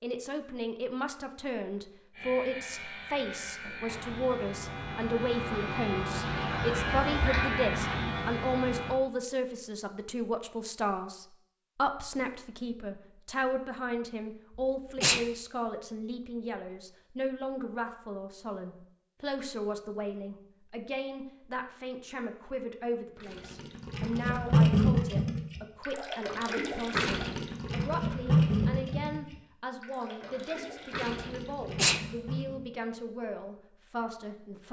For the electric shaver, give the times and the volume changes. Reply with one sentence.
The electric shaver can be heard from 2.1 to 9.0 s, getting louder.